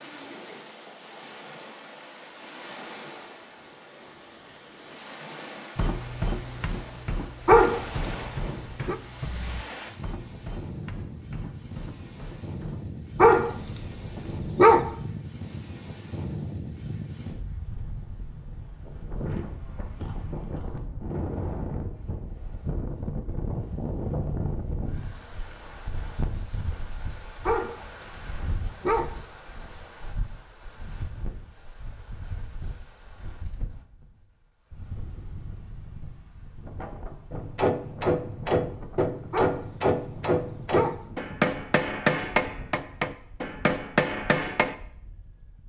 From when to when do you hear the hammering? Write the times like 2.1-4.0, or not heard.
5.8-13.0, 37.3-44.8.